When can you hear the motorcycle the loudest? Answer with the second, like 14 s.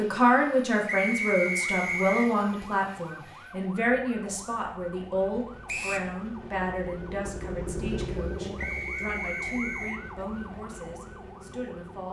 8 s.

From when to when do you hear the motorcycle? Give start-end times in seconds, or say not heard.
6.3-12.0.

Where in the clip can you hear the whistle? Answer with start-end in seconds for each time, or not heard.
0.8-2.2, 5.7-6.1, 8.6-10.0.